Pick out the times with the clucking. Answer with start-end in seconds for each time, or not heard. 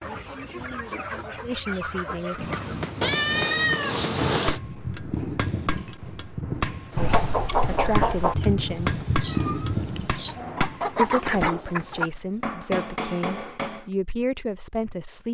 0.0-3.0, 7.0-8.3, 10.2-12.1.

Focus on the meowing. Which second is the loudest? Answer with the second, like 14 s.
4 s.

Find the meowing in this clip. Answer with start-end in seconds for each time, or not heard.
3.0-4.6, 8.6-10.3.